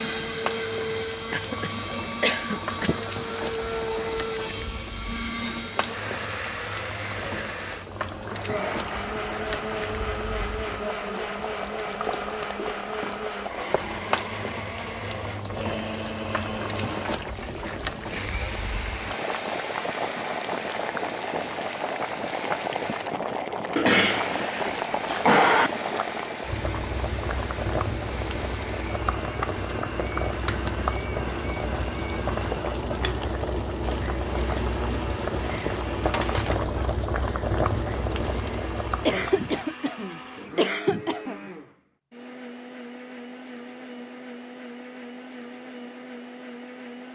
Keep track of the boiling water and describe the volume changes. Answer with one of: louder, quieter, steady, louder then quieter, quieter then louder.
louder.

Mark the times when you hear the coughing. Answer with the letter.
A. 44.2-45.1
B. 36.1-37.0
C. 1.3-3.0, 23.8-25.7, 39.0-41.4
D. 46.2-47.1
C.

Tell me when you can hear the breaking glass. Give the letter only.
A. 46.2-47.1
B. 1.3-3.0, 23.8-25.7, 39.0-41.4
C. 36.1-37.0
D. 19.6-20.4
C.